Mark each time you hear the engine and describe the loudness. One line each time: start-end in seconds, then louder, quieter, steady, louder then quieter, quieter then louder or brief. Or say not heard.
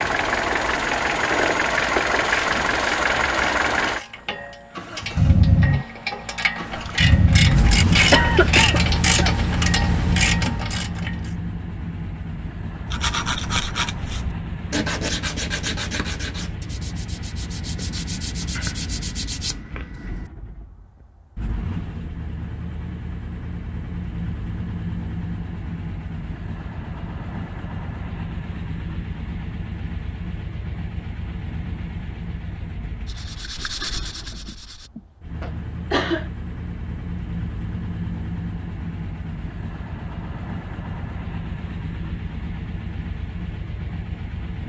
0.0-44.6 quieter.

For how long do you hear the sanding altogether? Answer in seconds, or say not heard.
9 s.